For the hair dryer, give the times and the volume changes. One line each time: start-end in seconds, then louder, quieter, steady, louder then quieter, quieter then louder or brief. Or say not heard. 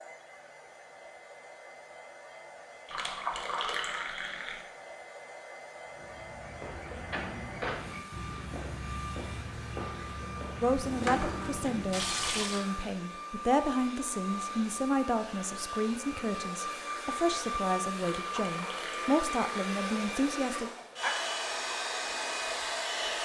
0.0-23.2 louder.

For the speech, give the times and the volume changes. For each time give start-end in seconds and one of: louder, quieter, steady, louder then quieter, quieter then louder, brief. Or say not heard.
10.6-20.7 steady.